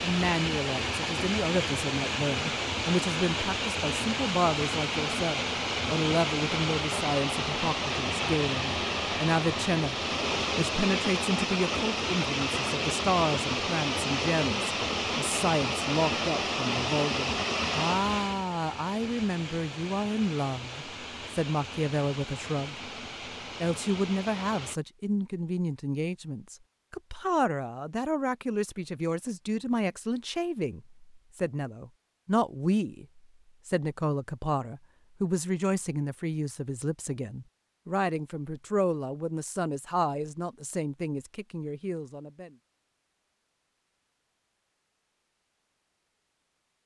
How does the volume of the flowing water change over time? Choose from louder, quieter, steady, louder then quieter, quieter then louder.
quieter.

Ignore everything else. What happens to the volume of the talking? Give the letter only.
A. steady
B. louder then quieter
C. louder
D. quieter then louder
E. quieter
A.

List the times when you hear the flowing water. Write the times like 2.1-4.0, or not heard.
0.0-24.8.